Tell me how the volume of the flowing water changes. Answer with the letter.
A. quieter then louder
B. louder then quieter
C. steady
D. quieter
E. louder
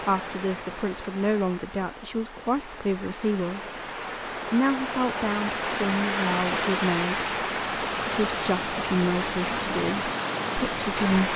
E.